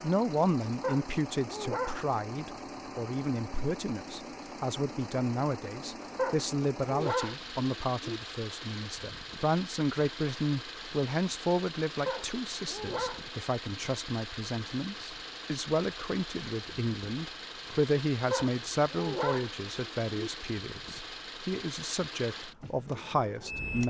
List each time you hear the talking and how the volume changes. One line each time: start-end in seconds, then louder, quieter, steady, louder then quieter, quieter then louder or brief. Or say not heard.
0.0-23.8 steady.